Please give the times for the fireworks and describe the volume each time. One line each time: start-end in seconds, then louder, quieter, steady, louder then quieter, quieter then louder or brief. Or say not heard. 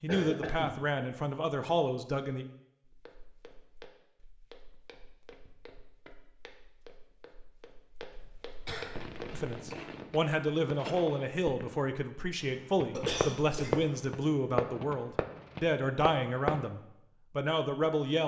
8.9-16.6 louder then quieter.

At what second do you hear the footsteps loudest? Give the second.
9 s.